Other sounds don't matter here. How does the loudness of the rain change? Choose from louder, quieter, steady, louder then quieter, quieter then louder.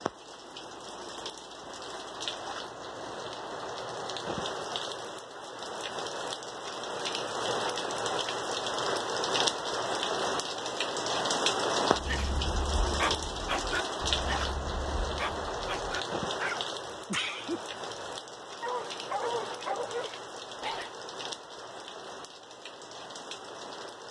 louder then quieter.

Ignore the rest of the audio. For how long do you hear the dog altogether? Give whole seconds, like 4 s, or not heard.
9 s.